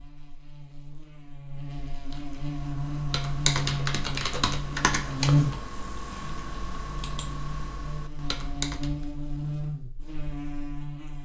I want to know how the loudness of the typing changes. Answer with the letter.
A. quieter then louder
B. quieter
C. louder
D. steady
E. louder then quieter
B.